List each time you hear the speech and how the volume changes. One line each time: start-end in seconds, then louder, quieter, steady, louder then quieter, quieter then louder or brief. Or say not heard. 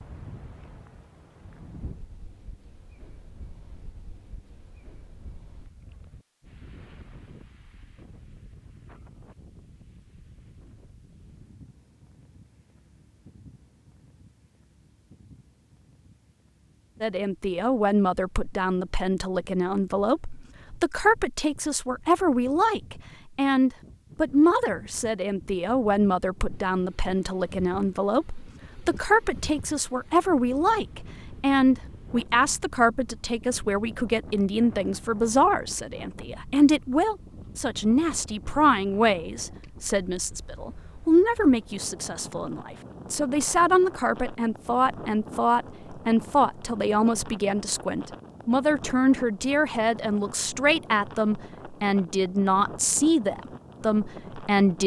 17.0-54.8 steady.